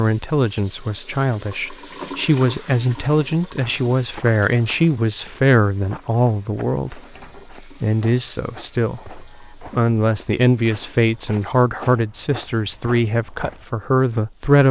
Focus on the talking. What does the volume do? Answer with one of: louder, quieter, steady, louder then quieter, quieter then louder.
steady.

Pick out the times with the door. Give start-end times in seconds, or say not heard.
6.8-7.5.